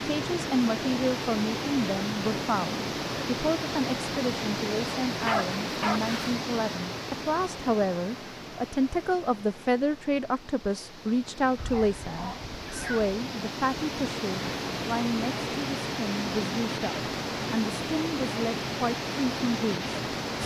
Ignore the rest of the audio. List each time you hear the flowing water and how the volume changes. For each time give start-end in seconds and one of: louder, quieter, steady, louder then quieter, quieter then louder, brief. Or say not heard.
0.0-20.4 quieter then louder.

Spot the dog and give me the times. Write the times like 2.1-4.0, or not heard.
5.2-6.3, 11.6-13.1.